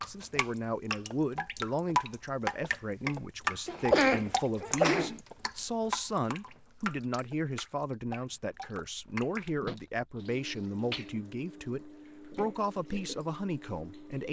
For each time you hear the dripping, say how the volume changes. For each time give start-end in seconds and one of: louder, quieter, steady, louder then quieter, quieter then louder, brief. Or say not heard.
0.0-14.2 quieter.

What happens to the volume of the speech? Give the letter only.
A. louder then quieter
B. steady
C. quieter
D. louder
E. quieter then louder
B.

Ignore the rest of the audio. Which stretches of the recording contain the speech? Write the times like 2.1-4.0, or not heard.
0.1-14.2.